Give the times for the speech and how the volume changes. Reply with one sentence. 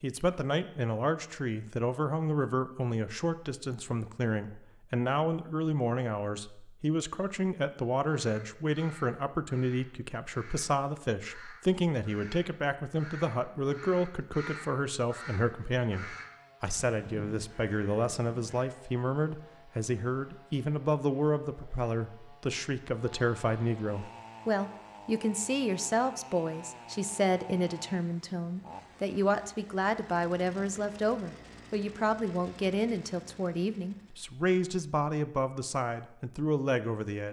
You can hear the speech from 0.0 to 37.2 s, at a steady volume.